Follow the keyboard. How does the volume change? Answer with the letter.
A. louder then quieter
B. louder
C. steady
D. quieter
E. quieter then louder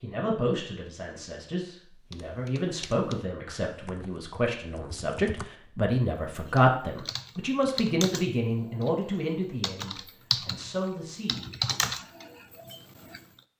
B.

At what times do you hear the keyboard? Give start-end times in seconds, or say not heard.
2.1-8.9, 9.6-13.2.